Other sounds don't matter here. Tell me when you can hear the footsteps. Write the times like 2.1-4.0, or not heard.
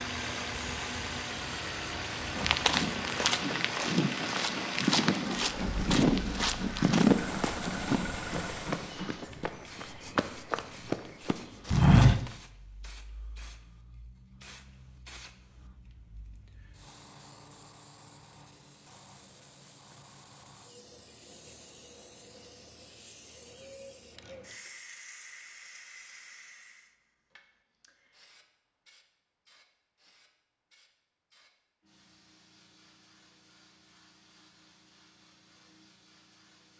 2.4-12.3.